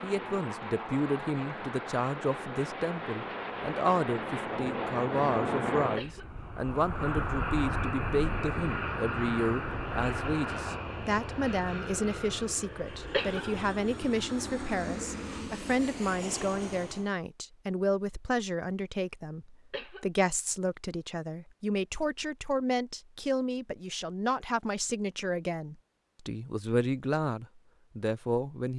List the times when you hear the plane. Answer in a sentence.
The plane can be heard from 0.0 to 17.1 s.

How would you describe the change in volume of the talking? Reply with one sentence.
The volume of the talking stays about the same.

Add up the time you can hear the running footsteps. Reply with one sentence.
You can't hear the running footsteps here.